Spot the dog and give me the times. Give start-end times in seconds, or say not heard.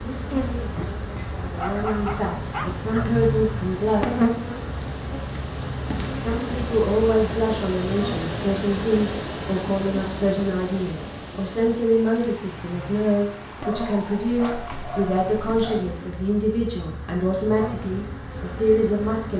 1.6-3.2, 13.6-15.8.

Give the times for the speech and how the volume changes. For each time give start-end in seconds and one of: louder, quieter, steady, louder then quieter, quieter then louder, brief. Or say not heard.
0.0-4.0 louder
6.2-19.3 steady.